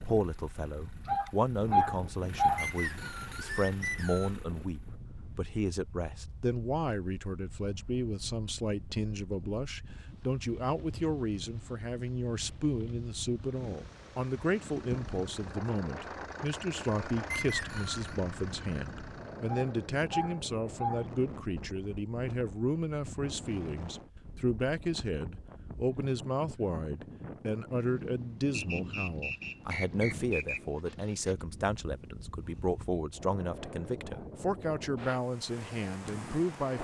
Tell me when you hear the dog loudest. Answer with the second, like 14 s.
2 s.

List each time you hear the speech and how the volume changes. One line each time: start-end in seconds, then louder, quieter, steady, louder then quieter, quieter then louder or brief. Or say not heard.
0.0-36.7 steady.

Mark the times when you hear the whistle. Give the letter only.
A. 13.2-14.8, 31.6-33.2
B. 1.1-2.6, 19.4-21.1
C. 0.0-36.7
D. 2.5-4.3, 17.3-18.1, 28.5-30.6
D.